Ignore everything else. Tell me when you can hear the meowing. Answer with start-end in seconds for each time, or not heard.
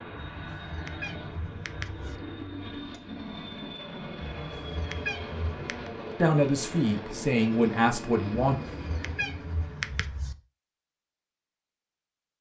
0.4-2.2, 4.2-5.9, 8.6-10.3.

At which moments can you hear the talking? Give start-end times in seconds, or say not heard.
6.2-8.6.